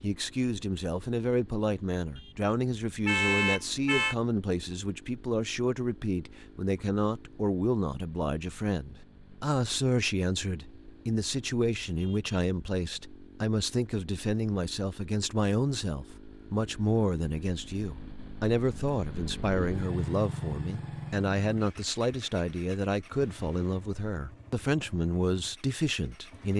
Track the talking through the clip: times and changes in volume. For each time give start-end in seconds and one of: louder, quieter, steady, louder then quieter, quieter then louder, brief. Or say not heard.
0.0-26.5 steady.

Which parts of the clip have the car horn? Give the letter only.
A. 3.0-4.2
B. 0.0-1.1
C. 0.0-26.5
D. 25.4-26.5
A.